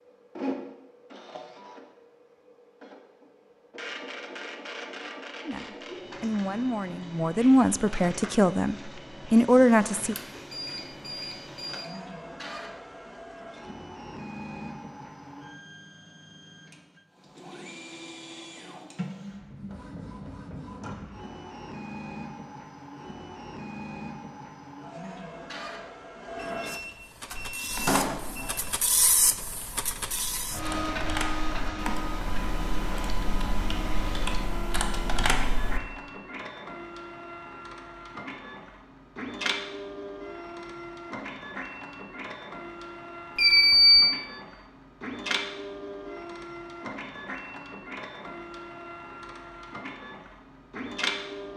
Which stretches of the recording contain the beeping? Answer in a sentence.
The beeping can be heard from 10.2 to 11.8 s, from 26.4 to 28.8 s and from 43.4 to 44.1 s.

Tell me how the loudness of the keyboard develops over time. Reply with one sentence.
The loudness of the keyboard goes up.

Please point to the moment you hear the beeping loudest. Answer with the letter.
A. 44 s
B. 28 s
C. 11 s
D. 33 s
A.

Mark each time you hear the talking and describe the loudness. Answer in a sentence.
The talking can be heard from 5.5 to 10.2 s, getting louder.